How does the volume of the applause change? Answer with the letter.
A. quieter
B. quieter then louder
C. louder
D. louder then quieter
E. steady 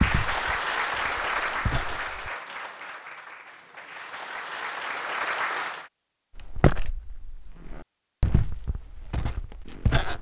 B.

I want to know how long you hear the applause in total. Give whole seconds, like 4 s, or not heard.
6 s.